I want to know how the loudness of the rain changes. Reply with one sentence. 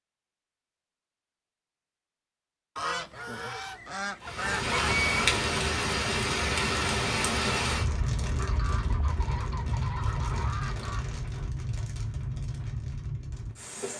The volume of the rain goes down.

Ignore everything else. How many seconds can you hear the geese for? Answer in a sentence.
The geese can be heard for 5 seconds in total.